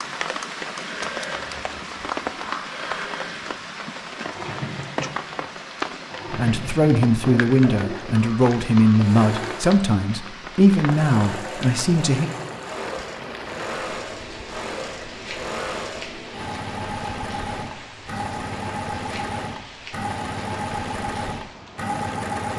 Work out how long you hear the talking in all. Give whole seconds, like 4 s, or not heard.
6 s.